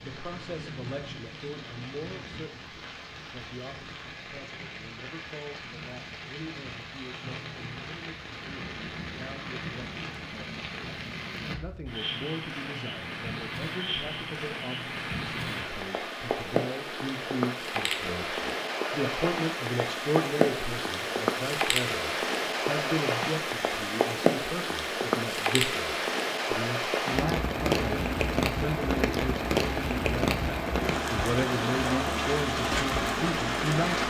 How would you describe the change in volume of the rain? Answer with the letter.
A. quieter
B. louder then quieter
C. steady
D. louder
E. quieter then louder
D.